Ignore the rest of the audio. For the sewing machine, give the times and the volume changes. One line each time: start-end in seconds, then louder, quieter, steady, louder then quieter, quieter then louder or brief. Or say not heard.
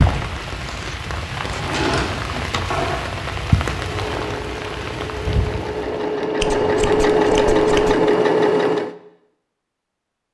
3.8-8.9 louder.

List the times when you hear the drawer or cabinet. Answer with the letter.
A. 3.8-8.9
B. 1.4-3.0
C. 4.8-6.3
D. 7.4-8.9
B.